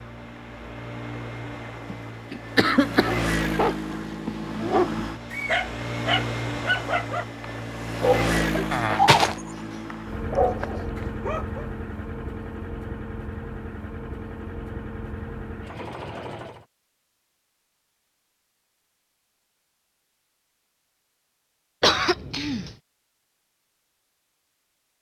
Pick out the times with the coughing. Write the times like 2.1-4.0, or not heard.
1.9-3.1, 8.7-9.3, 21.8-22.8.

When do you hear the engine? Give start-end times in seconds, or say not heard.
0.0-16.6.